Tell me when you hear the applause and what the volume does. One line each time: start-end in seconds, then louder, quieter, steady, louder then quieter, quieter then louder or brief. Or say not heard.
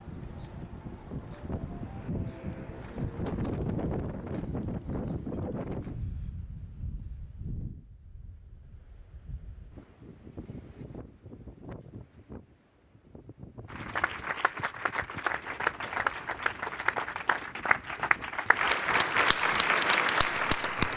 13.7-20.9 louder.